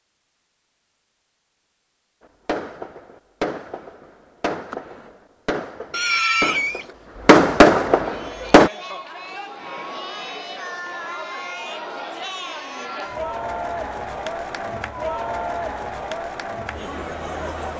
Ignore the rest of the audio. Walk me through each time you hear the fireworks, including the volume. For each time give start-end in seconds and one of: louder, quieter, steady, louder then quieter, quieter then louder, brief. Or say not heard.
2.5-8.7 louder.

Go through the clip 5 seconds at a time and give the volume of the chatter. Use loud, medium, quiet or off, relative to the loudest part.
off, medium, loud, loud.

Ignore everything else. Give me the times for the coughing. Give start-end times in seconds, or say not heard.
5.9-6.8.